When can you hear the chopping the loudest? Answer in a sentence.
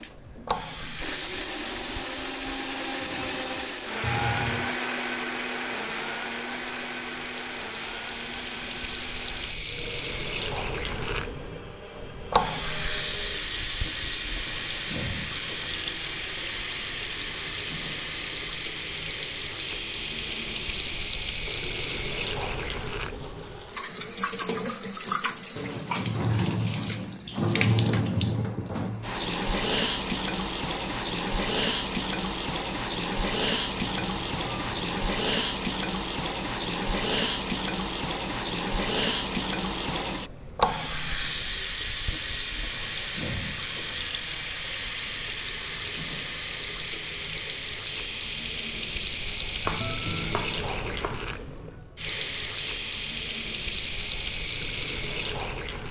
The loudest moment of the chopping is at 50 seconds.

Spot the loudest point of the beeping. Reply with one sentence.
The loudest moment of the beeping is at 4 seconds.